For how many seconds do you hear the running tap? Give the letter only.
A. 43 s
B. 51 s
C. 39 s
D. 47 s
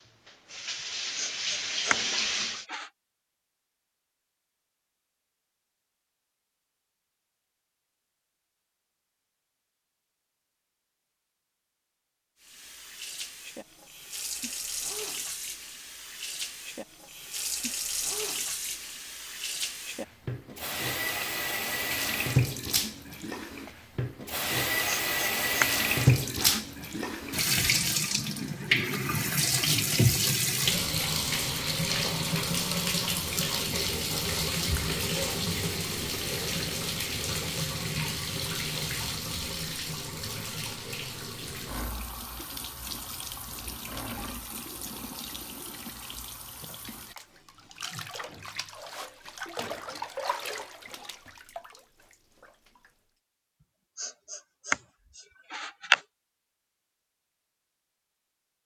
A.